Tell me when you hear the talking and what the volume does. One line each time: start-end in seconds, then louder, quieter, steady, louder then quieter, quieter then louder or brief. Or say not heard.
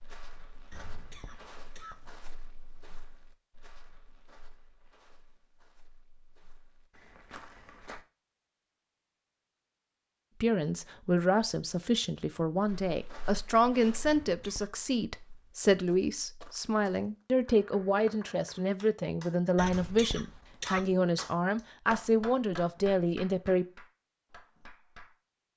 10.4-23.6 steady.